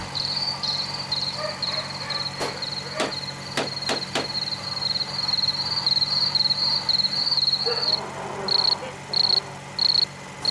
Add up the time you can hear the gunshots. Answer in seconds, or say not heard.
2 s.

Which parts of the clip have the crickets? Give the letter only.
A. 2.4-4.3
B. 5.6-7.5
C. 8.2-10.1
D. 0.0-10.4
D.